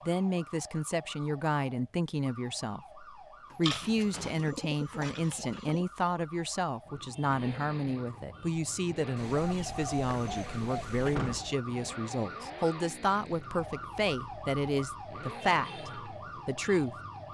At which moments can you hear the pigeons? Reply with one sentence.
You can hear the pigeons from 3.6 to 5.8 s and from 9.2 to 11.2 s.